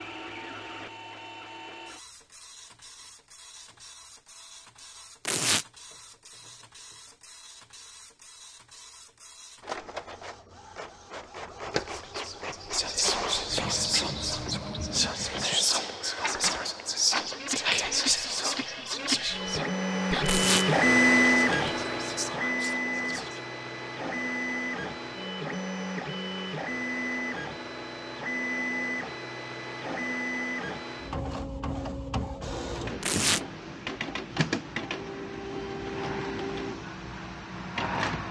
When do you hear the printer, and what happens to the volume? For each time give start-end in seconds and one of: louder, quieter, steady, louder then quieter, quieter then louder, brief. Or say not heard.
0.0-38.2 louder then quieter.